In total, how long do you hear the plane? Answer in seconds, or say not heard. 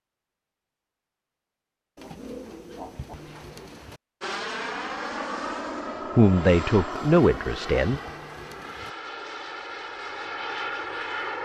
7 s.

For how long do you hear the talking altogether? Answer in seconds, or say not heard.
2 s.